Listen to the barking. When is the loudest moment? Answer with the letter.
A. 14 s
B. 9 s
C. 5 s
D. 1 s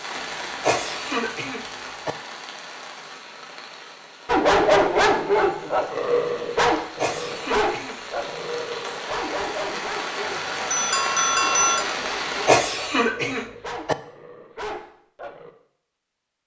C.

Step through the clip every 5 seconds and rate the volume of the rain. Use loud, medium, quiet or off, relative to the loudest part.
medium, medium, loud, off.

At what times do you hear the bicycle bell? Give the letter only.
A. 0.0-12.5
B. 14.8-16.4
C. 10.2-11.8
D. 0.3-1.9
C.